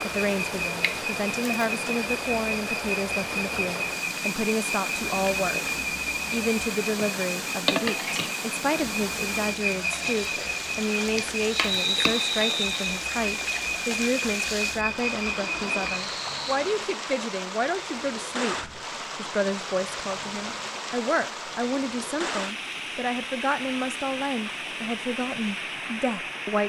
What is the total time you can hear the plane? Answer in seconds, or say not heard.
not heard.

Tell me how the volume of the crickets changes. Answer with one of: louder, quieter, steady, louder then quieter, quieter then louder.
steady.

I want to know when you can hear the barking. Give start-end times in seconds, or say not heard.
not heard.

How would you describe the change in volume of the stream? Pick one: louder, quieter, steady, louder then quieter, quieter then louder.
steady.